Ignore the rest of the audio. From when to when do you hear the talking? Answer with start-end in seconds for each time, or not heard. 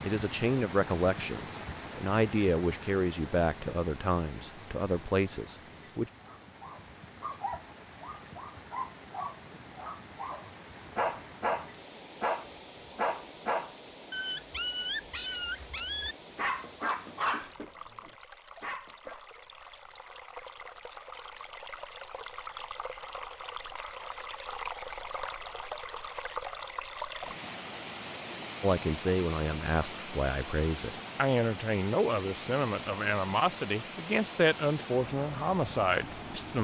0.0-6.0, 28.6-36.5.